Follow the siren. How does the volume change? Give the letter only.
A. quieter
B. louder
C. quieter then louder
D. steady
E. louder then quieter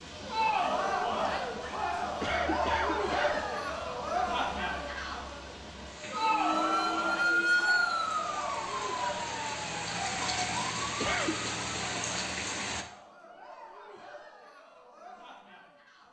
A.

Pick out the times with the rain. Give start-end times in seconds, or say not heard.
0.0-12.8.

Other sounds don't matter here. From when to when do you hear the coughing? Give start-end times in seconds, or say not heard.
2.0-3.5, 10.8-11.6.